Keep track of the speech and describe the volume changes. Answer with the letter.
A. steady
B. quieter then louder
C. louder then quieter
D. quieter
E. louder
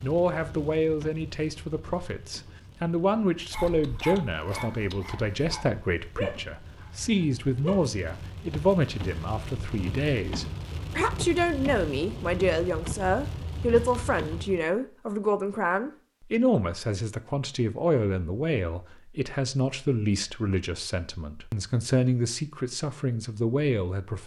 A.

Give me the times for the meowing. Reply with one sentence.
You can't hear the meowing here.